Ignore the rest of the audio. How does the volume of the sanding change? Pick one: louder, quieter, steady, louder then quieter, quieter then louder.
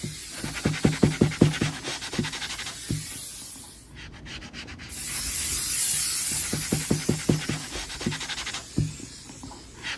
quieter then louder.